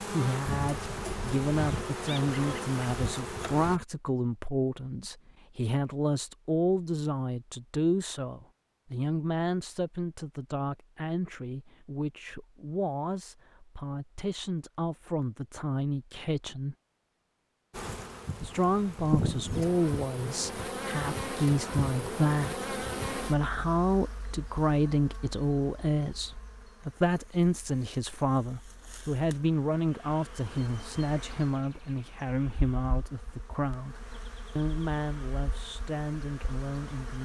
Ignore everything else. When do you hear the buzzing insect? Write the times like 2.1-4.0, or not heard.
0.0-3.8, 17.7-37.2.